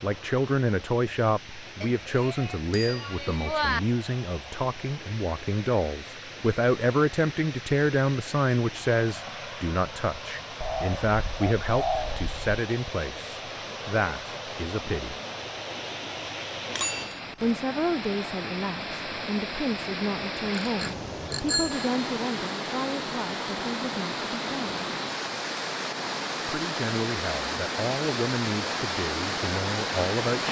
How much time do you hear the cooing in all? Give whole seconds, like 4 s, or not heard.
2 s.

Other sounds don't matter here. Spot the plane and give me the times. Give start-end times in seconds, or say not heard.
not heard.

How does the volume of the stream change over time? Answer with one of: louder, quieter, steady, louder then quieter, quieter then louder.
louder.